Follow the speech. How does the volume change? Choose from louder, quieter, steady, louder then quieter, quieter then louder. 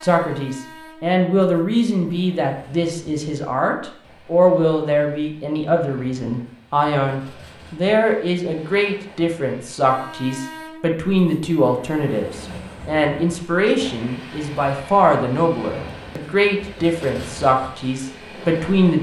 steady.